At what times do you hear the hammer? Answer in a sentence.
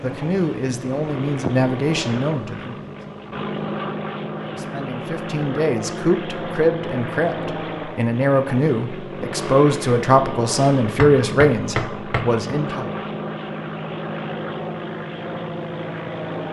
The hammer can be heard from 10.9 to 12.3 s.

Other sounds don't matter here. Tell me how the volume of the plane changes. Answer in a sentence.
The loudness of the plane stays about the same.